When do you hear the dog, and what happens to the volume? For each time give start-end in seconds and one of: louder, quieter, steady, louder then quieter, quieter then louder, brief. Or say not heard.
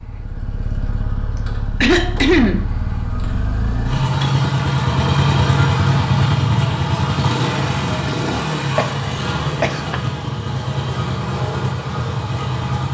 not heard.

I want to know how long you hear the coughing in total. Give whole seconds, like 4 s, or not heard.
3 s.